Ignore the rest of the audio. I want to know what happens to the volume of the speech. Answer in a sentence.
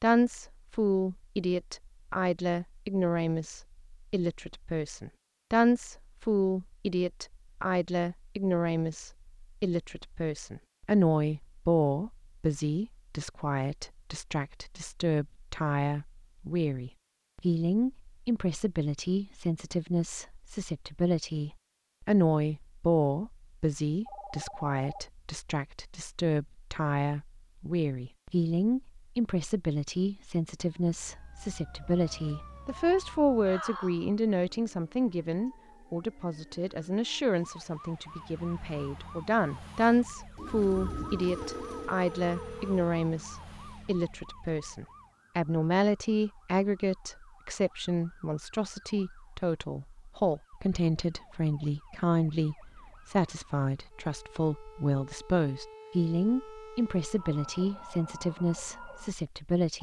The loudness of the speech stays about the same.